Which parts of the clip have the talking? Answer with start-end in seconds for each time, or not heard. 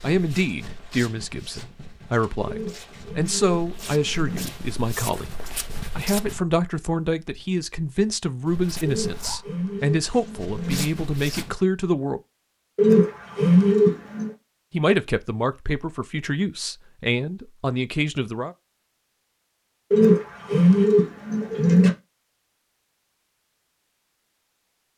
0.0-5.2, 6.0-12.2, 14.7-18.6.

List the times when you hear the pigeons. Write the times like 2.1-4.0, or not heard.
2.5-4.5, 8.8-10.8, 12.8-14.3, 19.9-21.9.